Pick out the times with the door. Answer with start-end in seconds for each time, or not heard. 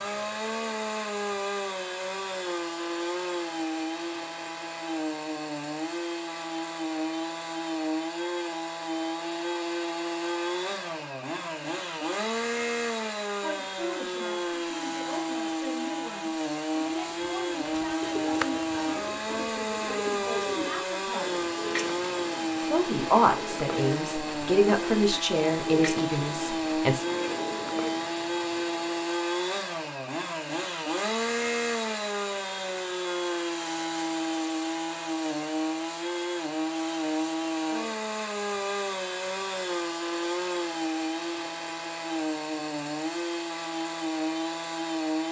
not heard.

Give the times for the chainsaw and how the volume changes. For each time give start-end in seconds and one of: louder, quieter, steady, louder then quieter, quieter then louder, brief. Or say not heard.
0.0-45.2 steady.